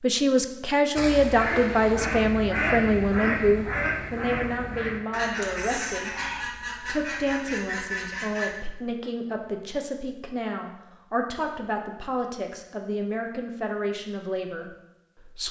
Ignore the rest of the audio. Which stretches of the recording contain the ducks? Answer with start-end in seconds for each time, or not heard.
0.9-8.6.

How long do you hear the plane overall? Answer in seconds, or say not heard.
not heard.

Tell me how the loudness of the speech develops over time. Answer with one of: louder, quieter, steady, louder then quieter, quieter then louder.
quieter.